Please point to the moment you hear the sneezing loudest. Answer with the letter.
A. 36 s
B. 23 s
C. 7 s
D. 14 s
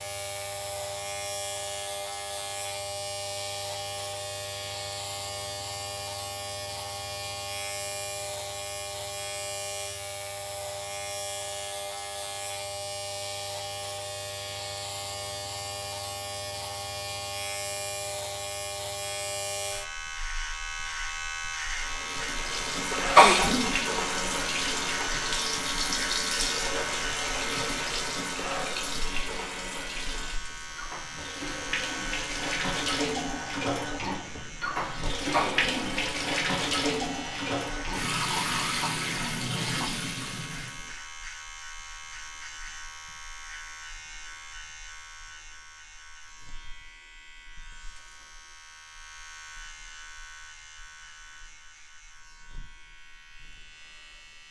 B.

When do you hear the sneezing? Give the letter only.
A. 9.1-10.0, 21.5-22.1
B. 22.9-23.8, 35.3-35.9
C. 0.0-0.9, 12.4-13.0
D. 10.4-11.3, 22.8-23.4
B.